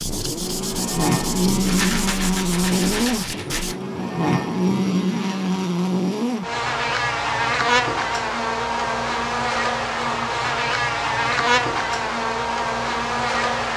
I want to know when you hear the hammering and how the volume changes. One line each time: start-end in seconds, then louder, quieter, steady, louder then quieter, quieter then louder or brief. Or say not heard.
not heard.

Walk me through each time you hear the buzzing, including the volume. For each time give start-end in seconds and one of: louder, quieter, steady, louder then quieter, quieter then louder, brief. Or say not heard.
0.0-13.7 steady.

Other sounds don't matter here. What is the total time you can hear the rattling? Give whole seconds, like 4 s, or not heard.
2 s.